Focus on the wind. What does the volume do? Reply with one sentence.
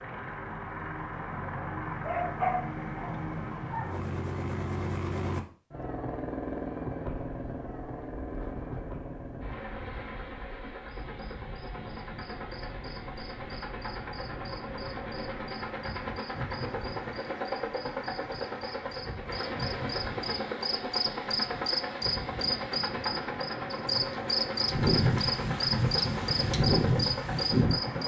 The volume of the wind goes up.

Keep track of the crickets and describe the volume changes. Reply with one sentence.
The volume of the crickets goes up.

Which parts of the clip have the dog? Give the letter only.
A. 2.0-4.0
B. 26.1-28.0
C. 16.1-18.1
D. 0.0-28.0
A.